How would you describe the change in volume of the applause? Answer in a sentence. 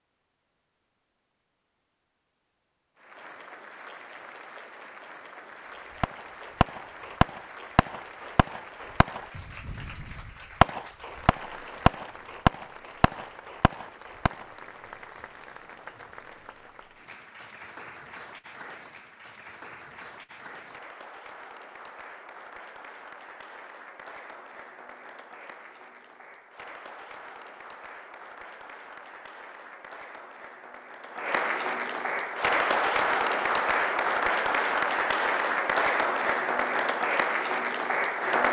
The loudness of the applause goes up.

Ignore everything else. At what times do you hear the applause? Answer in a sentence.
You can hear the applause from 3.0 to 38.4 s.